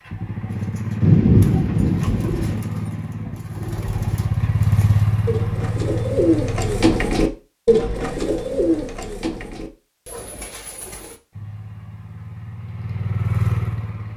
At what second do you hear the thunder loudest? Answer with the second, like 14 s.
1 s.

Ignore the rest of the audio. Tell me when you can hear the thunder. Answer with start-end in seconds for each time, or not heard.
1.0-2.6.